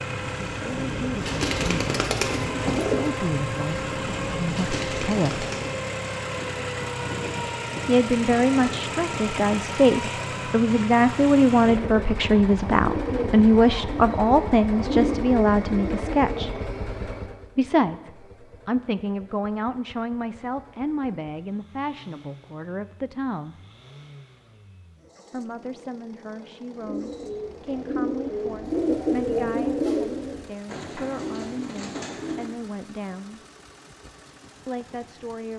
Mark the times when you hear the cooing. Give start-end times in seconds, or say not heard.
0.1-5.8, 12.8-16.6, 26.7-32.5.